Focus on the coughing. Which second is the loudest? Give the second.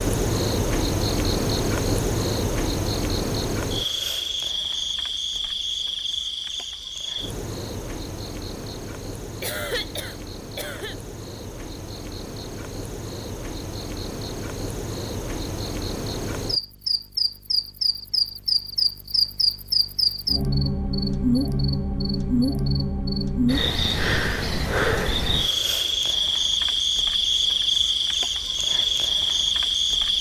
10 s.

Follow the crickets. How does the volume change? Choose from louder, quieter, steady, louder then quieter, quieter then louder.
quieter then louder.